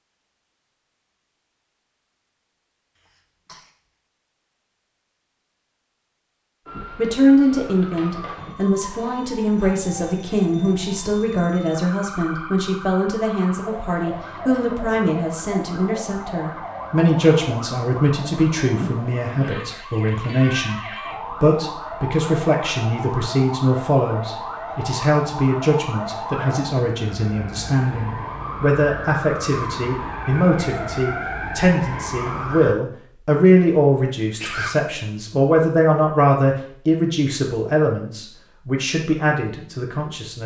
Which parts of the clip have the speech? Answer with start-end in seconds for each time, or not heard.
7.0-40.4.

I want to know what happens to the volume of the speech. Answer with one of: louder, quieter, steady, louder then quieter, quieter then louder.
steady.